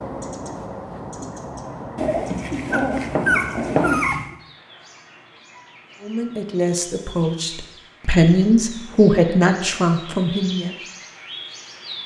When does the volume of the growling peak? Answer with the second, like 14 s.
4 s.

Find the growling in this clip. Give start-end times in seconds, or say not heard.
1.9-4.3.